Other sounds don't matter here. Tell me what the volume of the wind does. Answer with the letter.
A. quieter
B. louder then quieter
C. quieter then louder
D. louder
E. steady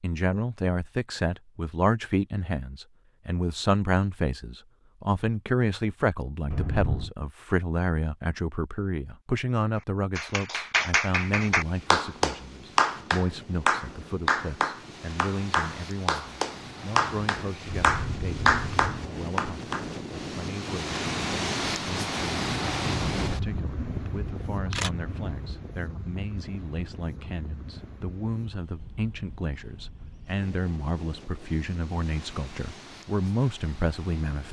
B.